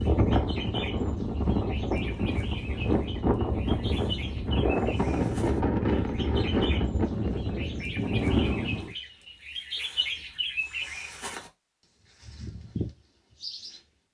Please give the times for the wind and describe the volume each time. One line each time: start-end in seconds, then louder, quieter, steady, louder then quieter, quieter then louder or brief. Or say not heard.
0.0-8.9 steady.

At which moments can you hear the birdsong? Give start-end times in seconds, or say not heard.
0.0-11.5, 12.2-13.8.